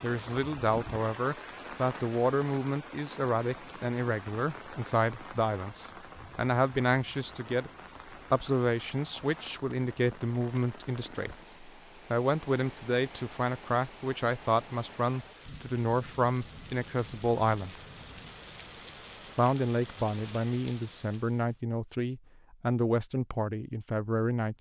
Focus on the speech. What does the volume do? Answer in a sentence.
The volume of the speech stays about the same.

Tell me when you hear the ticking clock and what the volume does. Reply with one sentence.
The ticking clock can't be heard in this clip.